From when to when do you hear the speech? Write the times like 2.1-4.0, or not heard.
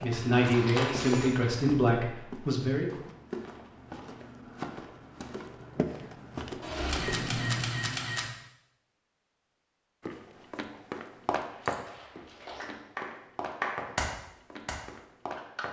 0.0-3.0.